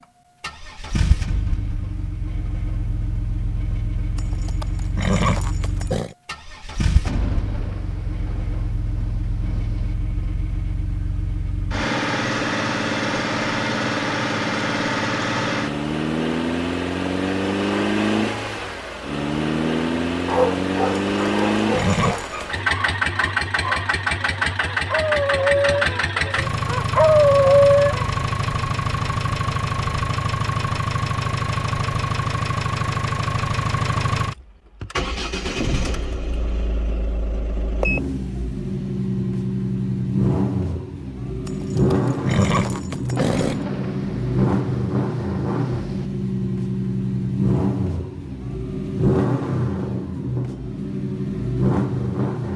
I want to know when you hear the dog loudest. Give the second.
28 s.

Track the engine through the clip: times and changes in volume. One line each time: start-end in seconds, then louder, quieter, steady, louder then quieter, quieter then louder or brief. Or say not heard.
0.4-52.5 louder.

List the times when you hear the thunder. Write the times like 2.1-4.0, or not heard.
7.0-9.9, 43.1-46.0.